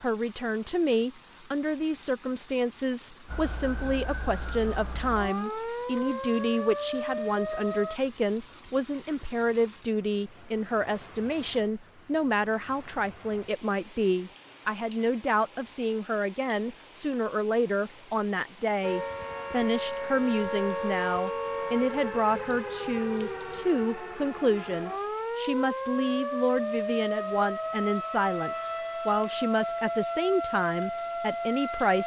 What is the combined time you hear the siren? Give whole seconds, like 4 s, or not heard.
18 s.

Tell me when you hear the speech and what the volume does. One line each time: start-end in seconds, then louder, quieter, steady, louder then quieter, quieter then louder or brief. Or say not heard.
0.0-32.0 steady.